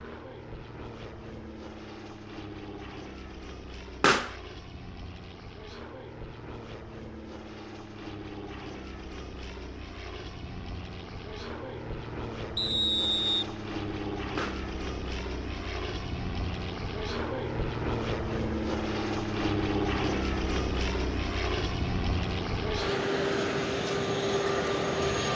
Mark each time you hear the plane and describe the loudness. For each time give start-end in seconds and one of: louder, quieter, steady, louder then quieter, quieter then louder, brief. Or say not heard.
0.0-25.3 louder.